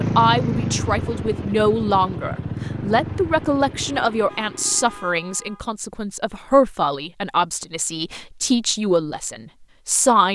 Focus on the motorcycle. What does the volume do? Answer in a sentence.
The volume of the motorcycle goes down.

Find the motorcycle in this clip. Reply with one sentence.
The motorcycle can be heard from 0.0 to 5.1 s.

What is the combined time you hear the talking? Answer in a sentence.
You can hear the talking for 10 seconds altogether.